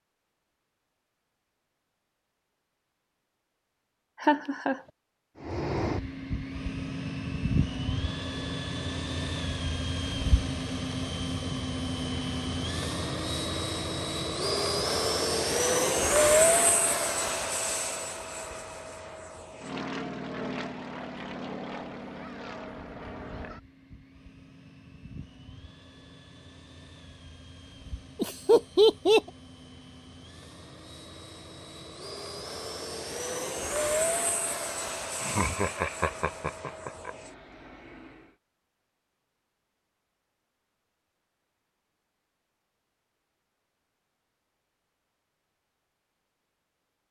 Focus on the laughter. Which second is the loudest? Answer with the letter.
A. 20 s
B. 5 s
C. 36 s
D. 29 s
D.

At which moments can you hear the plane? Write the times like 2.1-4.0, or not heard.
5.5-38.2.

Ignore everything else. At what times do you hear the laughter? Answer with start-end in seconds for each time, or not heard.
4.2-4.8, 28.1-29.2, 35.2-37.1.